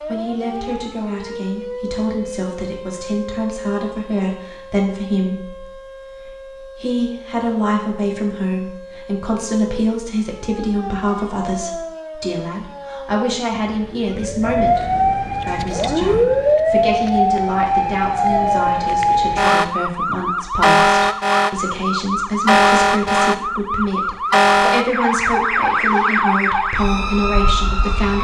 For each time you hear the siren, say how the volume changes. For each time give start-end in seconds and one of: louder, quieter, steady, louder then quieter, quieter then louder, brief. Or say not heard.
0.0-28.2 louder.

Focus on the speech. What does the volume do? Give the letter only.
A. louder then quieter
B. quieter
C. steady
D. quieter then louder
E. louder
C.